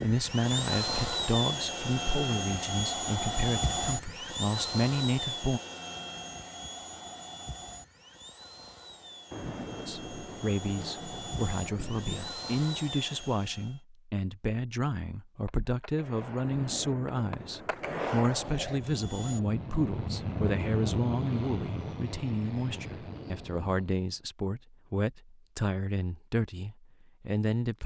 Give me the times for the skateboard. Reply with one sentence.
You can hear the skateboard from 15.4 to 18.9 s.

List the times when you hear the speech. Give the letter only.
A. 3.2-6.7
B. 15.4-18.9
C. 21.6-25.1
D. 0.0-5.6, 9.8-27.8
D.